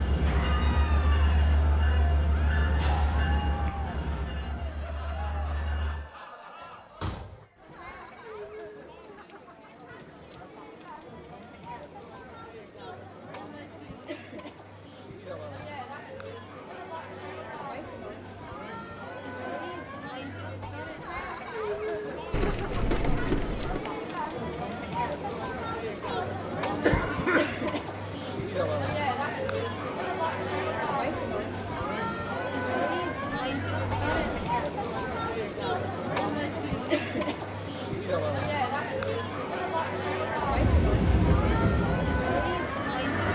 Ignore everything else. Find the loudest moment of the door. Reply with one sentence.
The volume of the door peaks at 23 seconds.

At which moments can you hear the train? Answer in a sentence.
You can hear the train from 0.0 to 6.1 s and from 40.4 to 43.2 s.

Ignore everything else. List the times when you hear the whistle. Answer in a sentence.
The whistle can't be heard in this clip.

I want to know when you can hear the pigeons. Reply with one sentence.
You can't hear the pigeons here.